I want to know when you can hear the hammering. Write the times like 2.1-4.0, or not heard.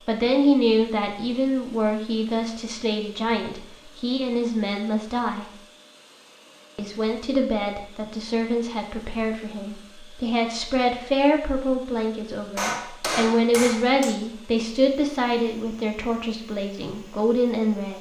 12.6-14.2.